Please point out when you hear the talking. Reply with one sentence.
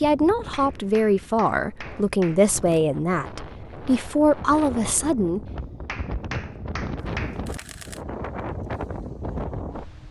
You can hear the talking from 0.0 to 5.5 s.